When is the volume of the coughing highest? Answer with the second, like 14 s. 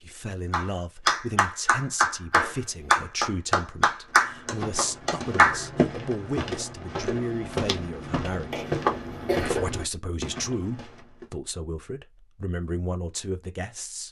9 s.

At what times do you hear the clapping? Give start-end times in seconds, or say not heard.
0.5-5.7.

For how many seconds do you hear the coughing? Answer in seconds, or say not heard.
2 s.